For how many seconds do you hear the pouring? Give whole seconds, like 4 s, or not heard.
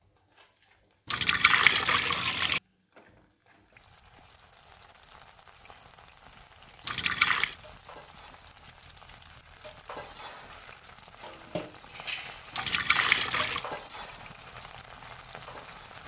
3 s.